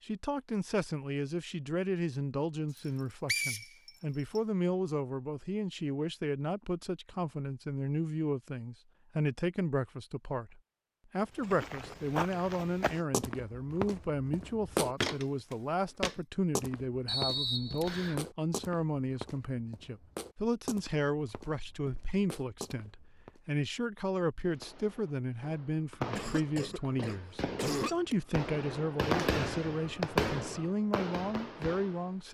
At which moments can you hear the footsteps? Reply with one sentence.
The footsteps can be heard from 11.3 to 23.4 s.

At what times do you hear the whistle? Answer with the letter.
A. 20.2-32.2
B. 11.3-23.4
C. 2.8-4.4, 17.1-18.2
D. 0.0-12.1
C.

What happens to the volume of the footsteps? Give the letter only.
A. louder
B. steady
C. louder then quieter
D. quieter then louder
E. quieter
E.